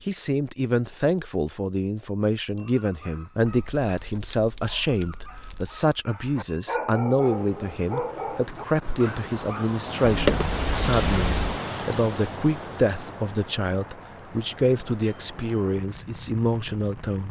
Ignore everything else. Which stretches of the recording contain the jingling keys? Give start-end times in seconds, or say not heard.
3.5-5.8, 10.0-11.6.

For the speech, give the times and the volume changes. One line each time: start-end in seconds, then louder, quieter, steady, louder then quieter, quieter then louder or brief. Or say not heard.
0.1-17.2 steady.